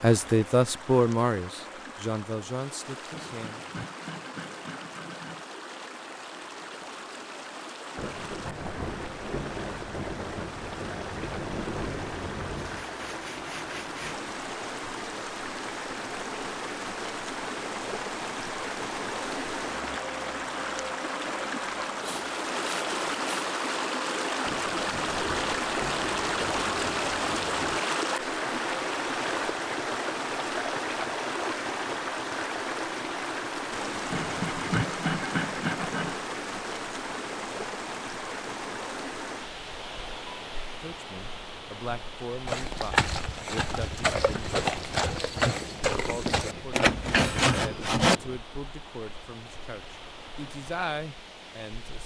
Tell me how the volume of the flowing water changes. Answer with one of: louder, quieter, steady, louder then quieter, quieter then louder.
louder then quieter.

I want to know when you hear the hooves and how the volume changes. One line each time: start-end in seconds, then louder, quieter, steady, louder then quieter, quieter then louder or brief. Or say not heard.
42.5-47.6 steady.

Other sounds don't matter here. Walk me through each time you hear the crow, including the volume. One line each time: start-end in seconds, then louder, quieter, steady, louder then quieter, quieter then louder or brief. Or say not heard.
not heard.